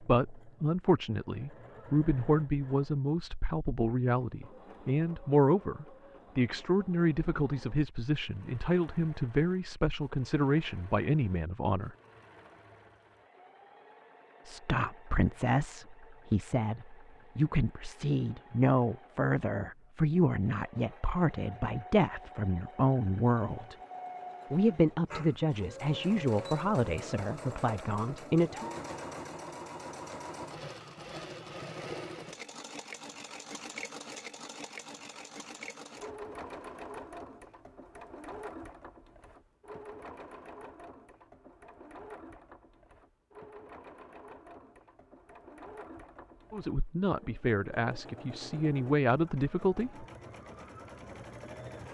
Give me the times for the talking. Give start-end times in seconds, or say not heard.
0.0-11.9, 14.4-23.8, 24.5-28.7, 46.5-50.0.